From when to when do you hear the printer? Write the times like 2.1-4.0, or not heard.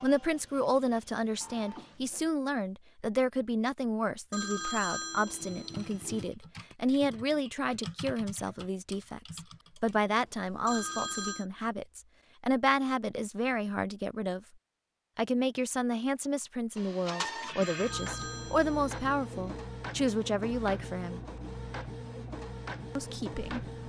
0.0-2.4, 16.8-23.8.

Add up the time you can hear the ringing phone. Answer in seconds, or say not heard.
5 s.